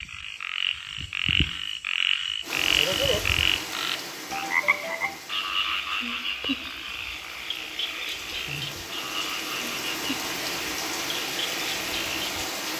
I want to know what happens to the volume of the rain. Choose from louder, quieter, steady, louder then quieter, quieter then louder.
quieter then louder.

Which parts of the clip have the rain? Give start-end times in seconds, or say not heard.
2.4-12.7.